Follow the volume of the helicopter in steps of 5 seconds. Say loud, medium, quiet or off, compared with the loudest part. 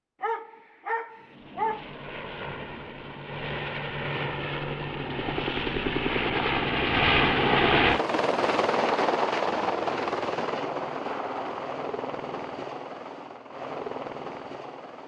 medium, loud, medium.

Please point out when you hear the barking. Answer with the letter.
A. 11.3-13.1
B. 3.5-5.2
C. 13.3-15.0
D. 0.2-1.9
D.